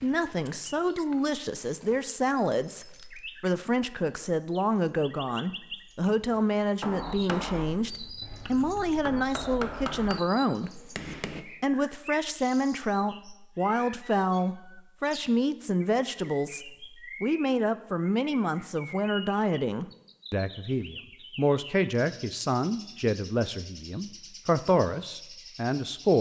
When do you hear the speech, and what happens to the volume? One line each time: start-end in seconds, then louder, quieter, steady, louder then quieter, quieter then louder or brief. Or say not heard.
0.0-26.1 steady.